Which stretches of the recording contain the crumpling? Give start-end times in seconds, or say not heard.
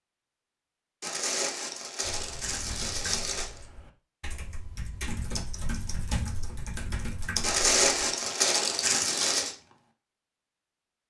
1.0-3.6, 7.4-9.6.